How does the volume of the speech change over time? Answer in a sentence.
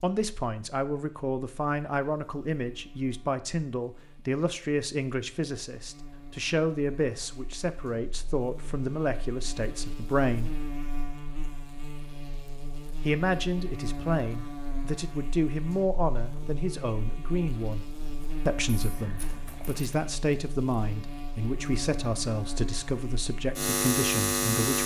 The volume of the speech stays about the same.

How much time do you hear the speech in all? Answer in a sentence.
You can hear the speech for 22 seconds altogether.